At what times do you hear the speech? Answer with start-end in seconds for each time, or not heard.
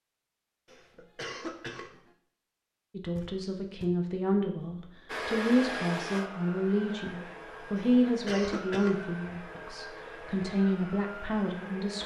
2.9-12.0.